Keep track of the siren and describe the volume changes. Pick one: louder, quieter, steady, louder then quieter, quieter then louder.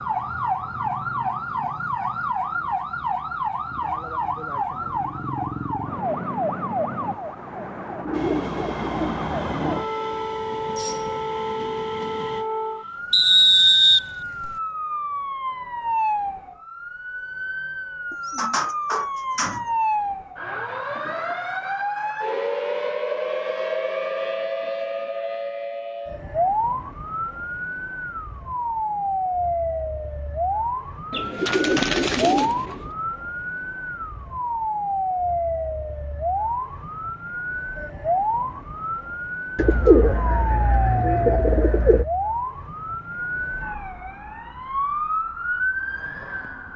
steady.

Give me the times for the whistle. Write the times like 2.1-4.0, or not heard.
13.1-14.5.